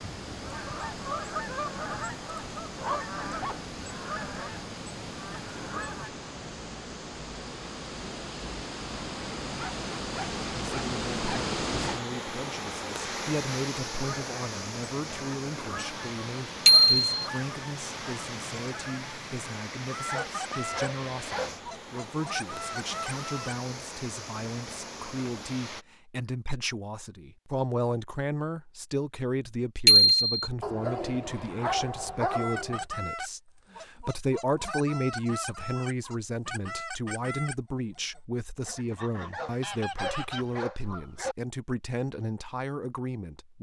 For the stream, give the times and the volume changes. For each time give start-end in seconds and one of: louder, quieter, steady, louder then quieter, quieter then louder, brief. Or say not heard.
0.0-25.9 louder then quieter.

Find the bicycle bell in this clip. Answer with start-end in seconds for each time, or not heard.
16.6-17.1, 29.9-30.5.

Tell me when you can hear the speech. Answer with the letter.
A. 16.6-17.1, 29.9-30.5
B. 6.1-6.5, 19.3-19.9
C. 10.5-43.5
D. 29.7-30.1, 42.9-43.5
C.